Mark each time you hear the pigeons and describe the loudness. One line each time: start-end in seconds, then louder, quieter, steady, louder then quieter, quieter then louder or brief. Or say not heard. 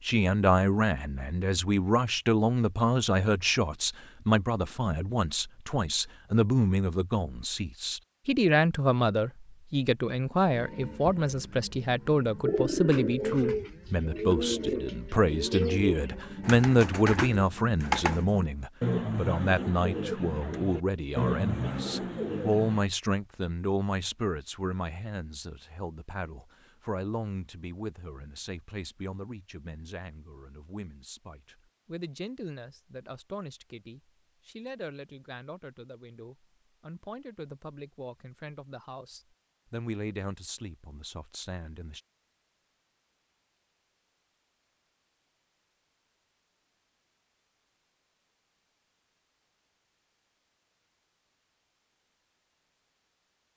12.4-22.9 steady.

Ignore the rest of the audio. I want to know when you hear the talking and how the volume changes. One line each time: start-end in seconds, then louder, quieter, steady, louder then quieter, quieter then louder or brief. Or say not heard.
0.0-42.0 quieter.